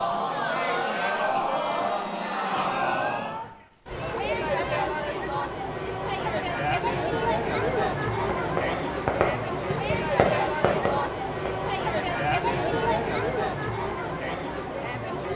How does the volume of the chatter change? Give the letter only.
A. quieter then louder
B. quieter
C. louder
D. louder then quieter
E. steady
E.